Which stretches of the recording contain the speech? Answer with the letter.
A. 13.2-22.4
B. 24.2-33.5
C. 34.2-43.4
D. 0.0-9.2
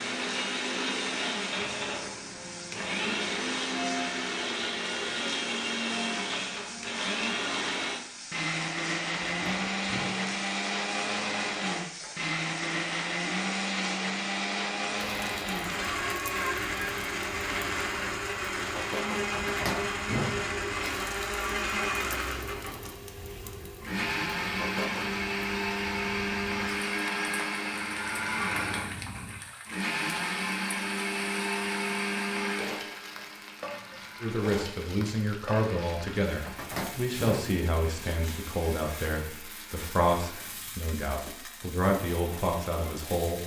C.